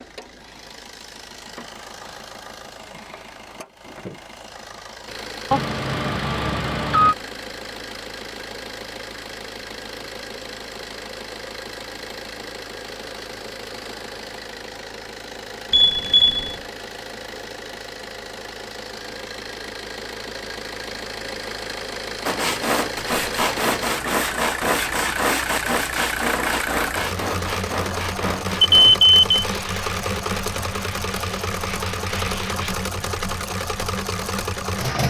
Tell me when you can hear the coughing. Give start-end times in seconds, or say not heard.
not heard.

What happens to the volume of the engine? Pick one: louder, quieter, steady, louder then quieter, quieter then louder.
louder.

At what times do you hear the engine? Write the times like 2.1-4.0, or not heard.
0.0-35.0.